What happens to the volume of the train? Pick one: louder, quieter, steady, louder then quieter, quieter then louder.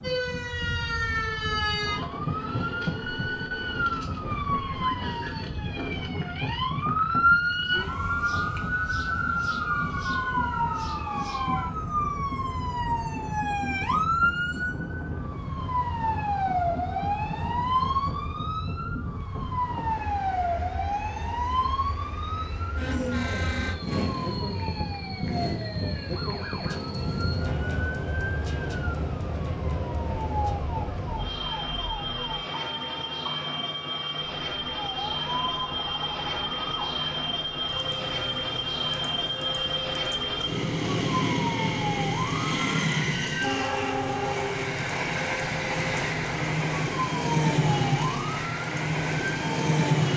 louder.